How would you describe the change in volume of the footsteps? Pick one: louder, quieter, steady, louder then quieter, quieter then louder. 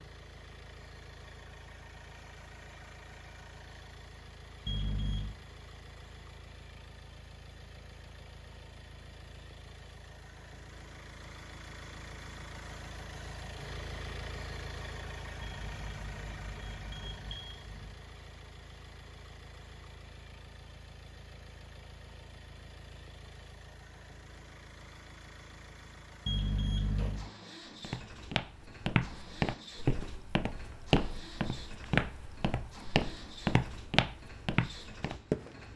steady.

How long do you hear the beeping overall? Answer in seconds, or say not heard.
4 s.